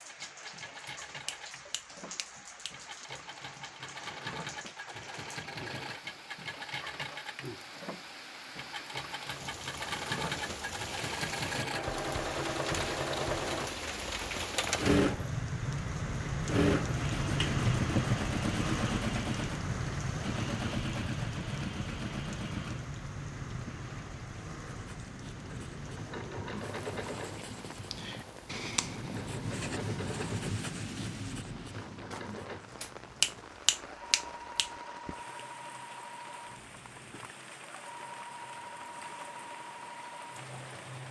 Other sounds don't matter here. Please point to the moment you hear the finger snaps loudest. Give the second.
33 s.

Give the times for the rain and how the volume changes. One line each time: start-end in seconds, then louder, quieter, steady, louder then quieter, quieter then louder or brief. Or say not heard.
0.0-41.0 louder then quieter.